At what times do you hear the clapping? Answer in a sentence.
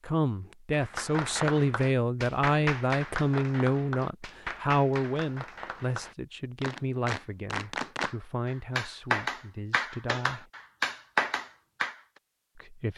You can hear the clapping from 0.7 to 11.9 s.